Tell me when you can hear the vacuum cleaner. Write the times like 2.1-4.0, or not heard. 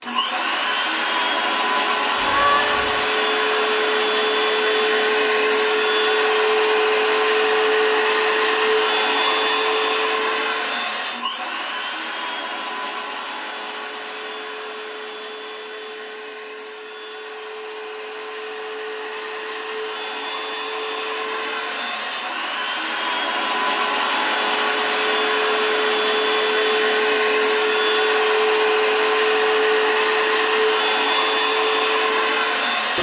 0.0-32.9.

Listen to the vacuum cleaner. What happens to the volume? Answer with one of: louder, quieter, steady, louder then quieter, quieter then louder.
quieter then louder.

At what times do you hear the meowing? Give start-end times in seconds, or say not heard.
2.1-3.0.